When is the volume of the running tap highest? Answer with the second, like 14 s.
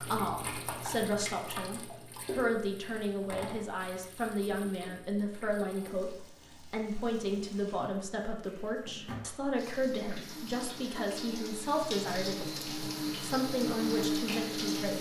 14 s.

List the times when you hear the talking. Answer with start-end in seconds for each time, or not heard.
0.0-14.9.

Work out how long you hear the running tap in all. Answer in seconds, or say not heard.
15 s.